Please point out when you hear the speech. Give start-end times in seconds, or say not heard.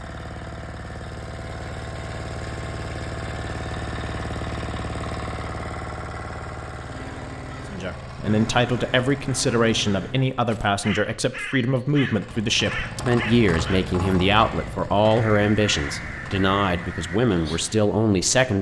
7.7-18.5.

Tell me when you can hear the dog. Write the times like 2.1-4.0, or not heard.
not heard.